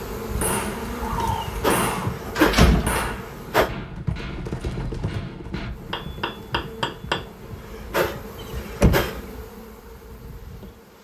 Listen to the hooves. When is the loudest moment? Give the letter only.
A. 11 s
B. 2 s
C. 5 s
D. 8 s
C.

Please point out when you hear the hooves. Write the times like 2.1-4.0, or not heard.
3.0-8.7.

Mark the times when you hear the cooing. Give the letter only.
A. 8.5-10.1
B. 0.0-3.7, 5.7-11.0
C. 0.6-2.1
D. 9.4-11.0
C.